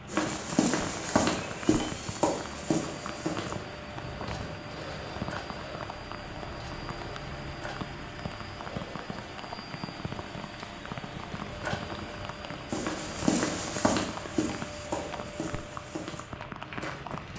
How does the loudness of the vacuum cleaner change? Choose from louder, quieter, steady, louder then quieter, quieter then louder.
steady.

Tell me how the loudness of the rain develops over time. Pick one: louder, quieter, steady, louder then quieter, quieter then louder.
steady.